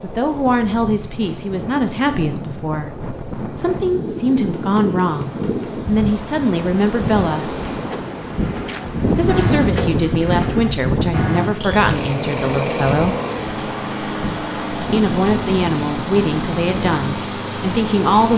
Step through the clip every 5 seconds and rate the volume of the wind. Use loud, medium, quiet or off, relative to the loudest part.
medium, loud, loud, medium.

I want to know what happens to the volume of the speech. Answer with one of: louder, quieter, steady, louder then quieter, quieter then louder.
steady.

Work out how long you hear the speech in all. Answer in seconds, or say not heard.
15 s.